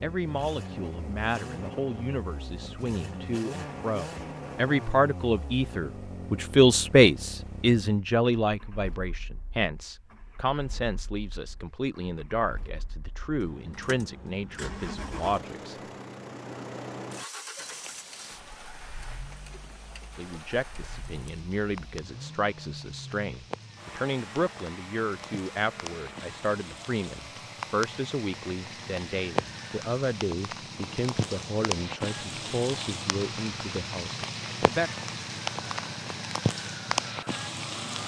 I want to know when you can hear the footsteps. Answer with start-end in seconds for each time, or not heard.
not heard.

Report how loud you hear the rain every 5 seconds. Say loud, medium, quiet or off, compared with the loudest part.
off, off, off, quiet, quiet, medium, loud, loud.